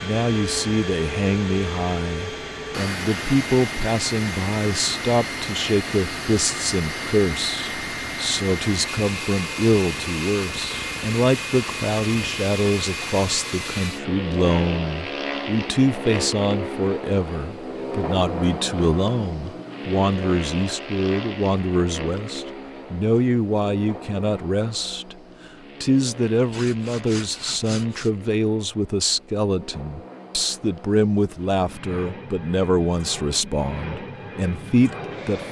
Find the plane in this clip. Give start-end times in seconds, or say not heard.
0.0-35.4.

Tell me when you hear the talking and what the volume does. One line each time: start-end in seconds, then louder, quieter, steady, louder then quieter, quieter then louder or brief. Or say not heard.
0.0-25.1 steady
25.8-35.4 steady.